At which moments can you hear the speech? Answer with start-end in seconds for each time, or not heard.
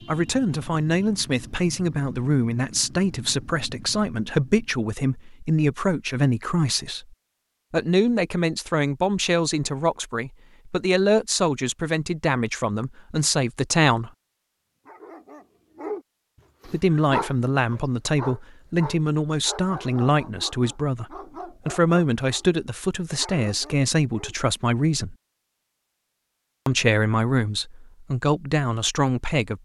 0.1-7.0, 7.7-14.1, 16.6-21.1, 21.6-25.1, 26.6-29.5.